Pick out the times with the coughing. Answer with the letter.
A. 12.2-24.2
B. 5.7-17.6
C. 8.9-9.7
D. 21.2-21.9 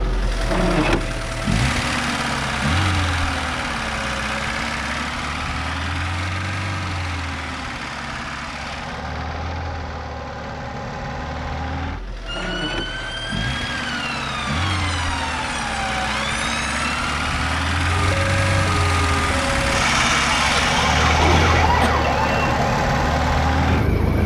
D.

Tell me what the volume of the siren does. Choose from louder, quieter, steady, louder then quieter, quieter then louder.
louder.